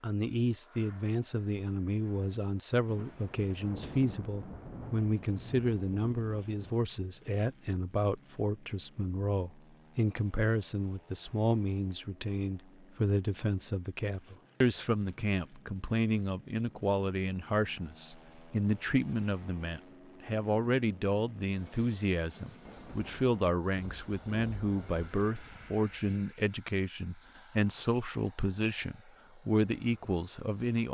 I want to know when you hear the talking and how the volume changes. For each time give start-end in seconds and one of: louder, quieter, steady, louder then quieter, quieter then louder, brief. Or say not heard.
0.0-30.8 steady.